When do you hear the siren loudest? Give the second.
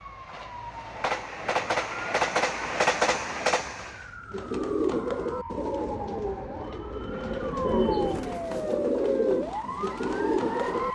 9 s.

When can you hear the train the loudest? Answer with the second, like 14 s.
3 s.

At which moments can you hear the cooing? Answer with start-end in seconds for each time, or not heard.
4.3-10.9.